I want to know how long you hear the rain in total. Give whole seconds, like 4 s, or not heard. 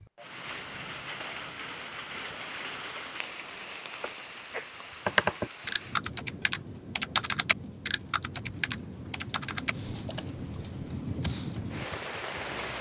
13 s.